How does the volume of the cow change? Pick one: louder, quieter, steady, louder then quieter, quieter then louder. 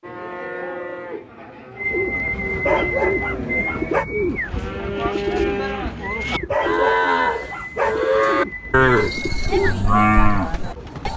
louder.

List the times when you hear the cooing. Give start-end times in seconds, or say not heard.
1.8-11.1.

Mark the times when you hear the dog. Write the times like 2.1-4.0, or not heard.
2.6-4.0, 6.5-8.2.